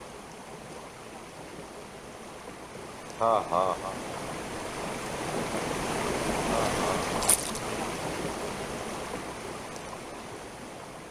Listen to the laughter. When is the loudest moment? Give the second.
3 s.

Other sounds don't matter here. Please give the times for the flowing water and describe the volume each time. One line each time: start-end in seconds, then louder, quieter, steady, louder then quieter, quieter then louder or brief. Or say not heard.
0.0-11.0 louder then quieter.